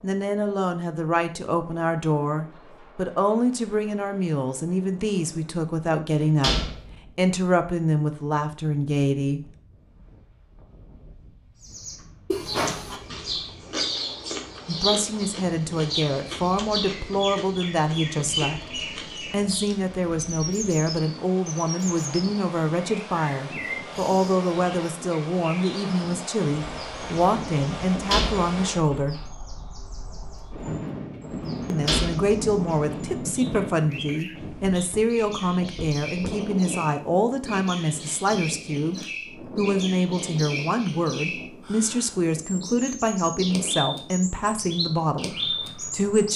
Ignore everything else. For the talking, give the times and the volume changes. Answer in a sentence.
You can hear the talking from 0.0 to 9.6 s, at a steady volume; from 14.7 to 29.2 s, at a steady volume; and from 31.7 to 46.3 s, at a steady volume.